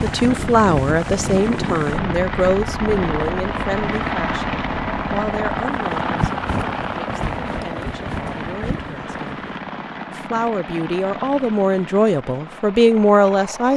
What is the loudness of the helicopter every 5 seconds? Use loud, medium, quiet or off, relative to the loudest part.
loud, loud, medium.